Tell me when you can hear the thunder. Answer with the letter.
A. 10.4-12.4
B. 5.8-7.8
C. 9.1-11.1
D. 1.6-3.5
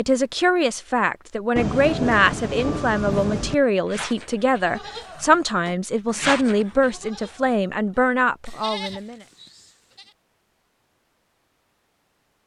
D.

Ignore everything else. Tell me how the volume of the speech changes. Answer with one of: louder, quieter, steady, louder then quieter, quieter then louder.
steady.